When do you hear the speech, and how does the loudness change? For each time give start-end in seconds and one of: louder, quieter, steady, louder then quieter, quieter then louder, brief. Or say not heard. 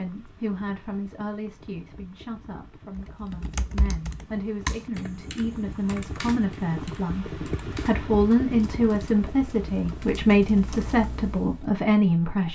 0.0-12.5 louder.